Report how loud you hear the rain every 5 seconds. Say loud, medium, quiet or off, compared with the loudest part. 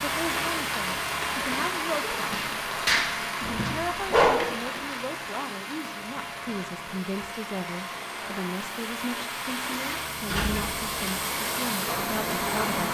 loud, medium, loud.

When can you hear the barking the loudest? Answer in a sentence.
The loudest moment of the barking is at 4 seconds.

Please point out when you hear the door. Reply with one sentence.
The door can be heard from 10.2 to 10.8 s.